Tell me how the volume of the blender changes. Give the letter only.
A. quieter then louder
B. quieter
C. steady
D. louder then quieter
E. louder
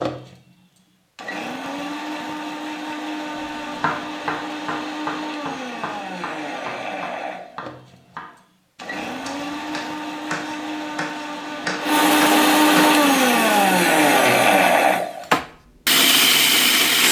E.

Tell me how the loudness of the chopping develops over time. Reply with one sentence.
The loudness of the chopping goes down, then up.